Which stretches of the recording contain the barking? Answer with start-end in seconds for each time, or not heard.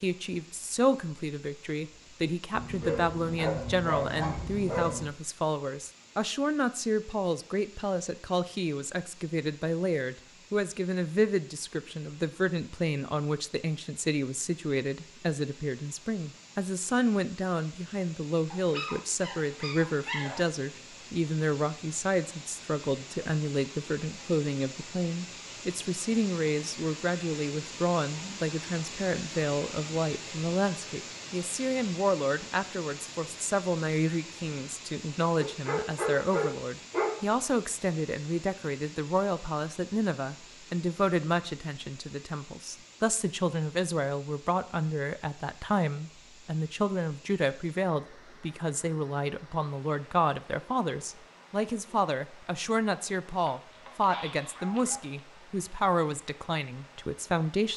2.5-5.1, 18.5-20.5, 35.4-37.2, 53.5-55.2.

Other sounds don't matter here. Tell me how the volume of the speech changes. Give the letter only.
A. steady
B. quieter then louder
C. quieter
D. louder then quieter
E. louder
A.